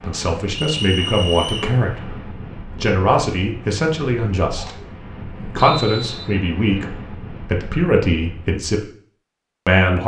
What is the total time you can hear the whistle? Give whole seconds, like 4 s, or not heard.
2 s.